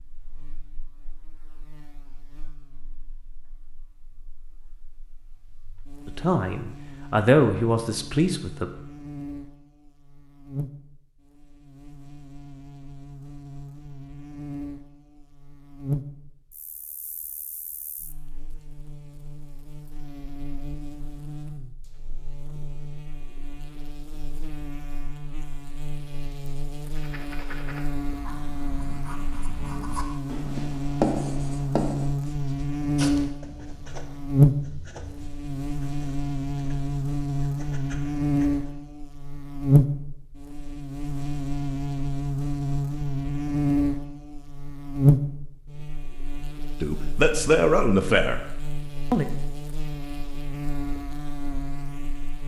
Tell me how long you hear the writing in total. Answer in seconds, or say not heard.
12 s.